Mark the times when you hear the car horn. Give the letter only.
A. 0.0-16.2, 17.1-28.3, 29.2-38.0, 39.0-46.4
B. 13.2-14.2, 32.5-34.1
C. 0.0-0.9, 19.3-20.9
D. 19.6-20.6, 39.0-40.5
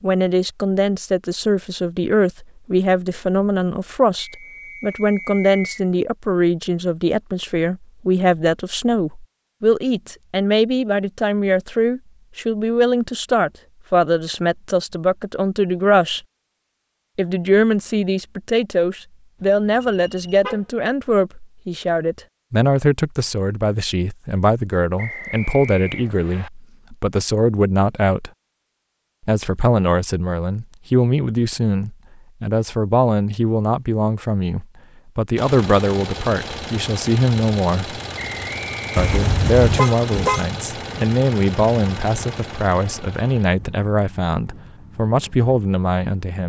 D.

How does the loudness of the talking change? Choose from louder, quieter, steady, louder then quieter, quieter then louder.
steady.